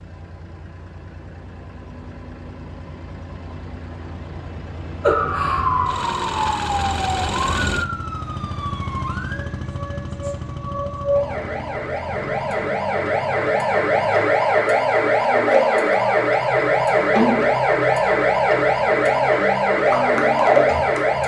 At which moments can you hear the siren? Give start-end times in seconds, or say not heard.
5.0-21.2.